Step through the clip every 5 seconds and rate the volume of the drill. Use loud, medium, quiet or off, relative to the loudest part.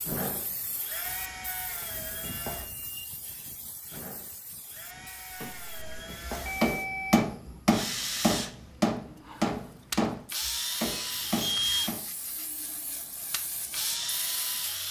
medium, loud, loud.